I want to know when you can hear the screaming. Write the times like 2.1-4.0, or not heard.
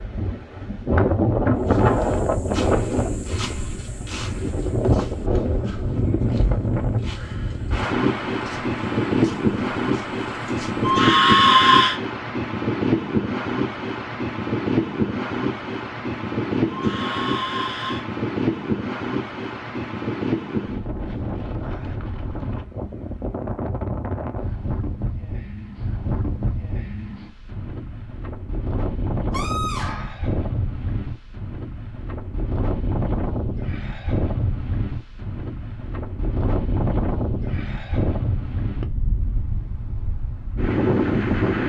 10.8-11.9, 16.7-18.1, 29.3-30.2.